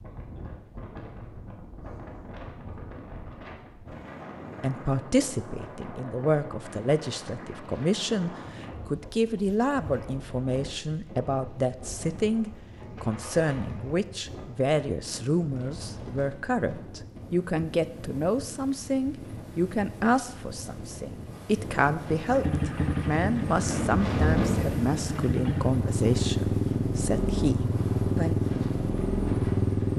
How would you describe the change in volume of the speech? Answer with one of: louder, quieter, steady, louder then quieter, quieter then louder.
steady.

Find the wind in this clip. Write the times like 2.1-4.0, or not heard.
0.0-29.9.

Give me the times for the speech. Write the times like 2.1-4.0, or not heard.
4.6-28.4.